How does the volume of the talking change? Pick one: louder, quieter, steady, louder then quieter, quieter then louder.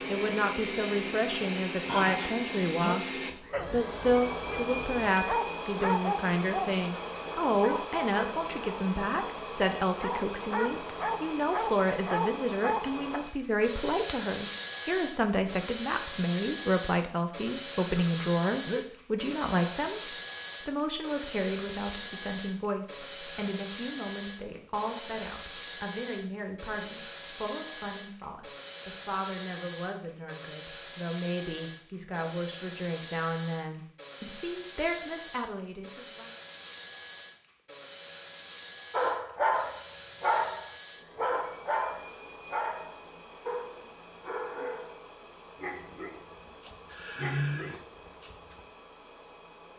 quieter.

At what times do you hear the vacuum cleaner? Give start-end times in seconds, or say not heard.
0.0-49.7.